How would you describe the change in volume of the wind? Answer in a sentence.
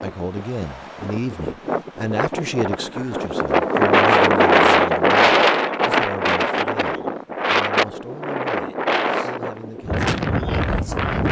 The loudness of the wind goes up, then down.